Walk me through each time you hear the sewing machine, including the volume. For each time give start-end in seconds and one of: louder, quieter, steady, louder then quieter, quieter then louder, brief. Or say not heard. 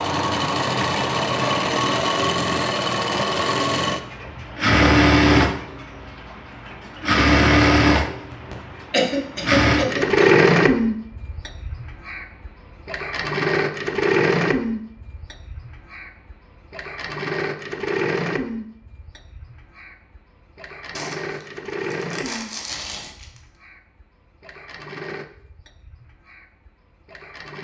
0.0-27.5 quieter.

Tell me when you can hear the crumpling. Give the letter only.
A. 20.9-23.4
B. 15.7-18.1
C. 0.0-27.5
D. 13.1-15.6
A.